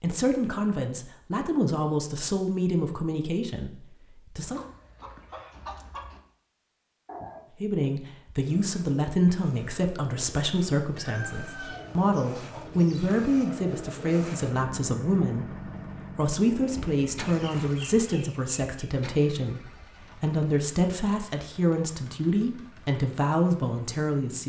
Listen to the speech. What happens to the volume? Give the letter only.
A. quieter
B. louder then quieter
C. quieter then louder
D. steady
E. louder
D.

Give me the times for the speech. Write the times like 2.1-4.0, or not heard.
0.0-4.6, 7.5-24.4.